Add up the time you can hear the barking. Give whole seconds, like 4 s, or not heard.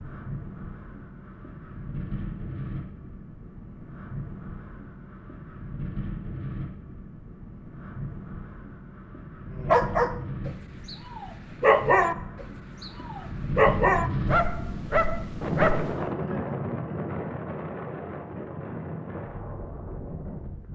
6 s.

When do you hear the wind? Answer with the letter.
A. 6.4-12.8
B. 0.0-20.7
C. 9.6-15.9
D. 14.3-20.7
B.